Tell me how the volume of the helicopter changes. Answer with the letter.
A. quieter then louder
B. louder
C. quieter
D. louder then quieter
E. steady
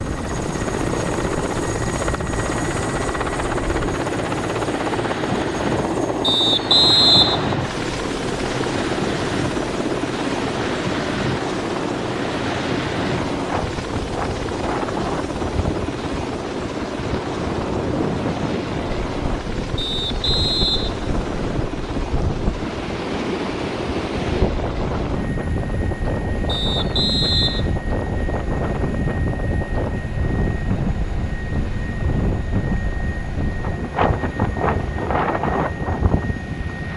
C.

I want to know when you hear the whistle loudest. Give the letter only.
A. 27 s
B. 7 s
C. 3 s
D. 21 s
B.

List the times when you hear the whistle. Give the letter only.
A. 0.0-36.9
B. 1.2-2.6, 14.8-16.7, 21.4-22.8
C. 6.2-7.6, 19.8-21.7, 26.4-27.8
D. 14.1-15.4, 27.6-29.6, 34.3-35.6
C.